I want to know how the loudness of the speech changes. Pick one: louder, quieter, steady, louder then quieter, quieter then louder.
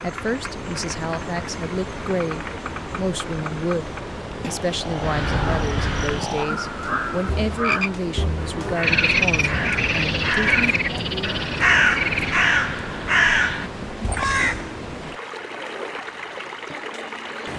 steady.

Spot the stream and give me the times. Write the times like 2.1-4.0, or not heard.
0.0-17.5.